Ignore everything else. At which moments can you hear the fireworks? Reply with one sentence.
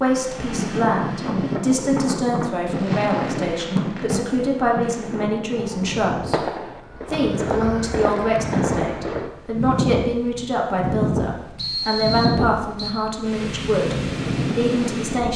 The fireworks can be heard from 2.6 to 9.3 s.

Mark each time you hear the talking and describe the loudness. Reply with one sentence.
The talking can be heard from 0.0 to 15.3 s, at a steady volume.